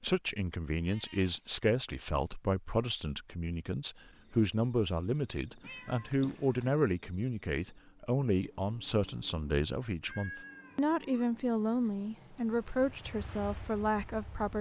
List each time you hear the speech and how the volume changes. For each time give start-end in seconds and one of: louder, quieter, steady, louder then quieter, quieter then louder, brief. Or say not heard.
0.0-14.5 steady.